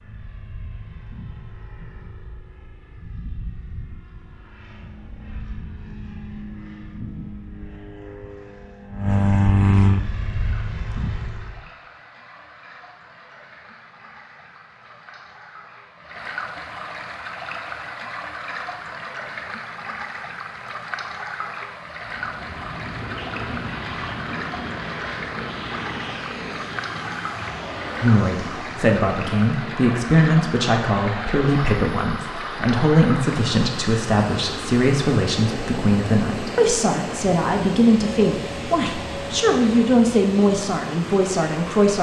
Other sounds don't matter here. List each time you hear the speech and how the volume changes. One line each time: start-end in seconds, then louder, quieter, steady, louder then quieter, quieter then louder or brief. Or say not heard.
28.0-41.9 steady.